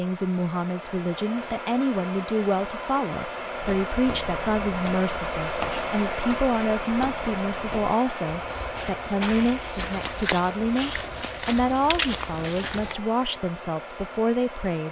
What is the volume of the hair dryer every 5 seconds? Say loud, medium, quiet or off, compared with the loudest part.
loud, loud, medium.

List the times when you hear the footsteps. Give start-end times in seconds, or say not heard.
3.5-12.9.